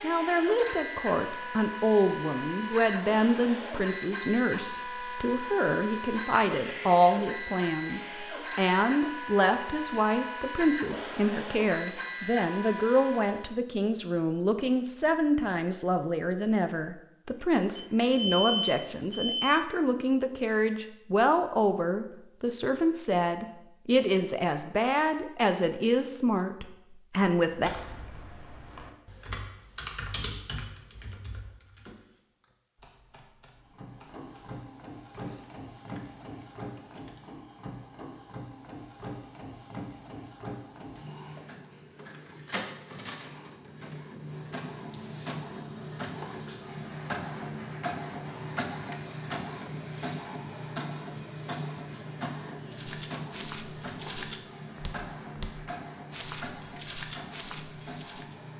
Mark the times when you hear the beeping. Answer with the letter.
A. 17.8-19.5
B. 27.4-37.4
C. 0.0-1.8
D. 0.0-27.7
A.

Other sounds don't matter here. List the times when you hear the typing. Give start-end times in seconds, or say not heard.
27.4-37.4.